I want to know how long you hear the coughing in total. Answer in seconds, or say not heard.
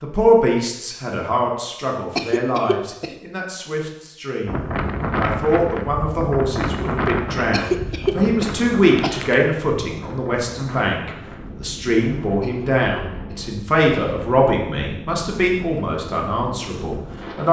5 s.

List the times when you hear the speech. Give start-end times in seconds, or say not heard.
0.0-17.4.